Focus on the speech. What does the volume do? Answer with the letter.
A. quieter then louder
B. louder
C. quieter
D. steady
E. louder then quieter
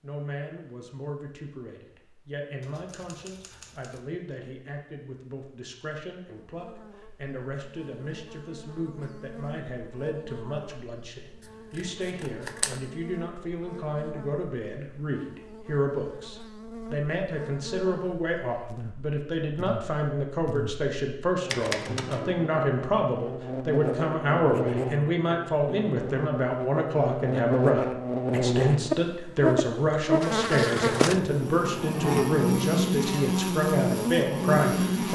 B.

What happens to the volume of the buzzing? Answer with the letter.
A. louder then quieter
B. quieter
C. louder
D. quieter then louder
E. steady
C.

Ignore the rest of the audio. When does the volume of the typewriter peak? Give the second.
22 s.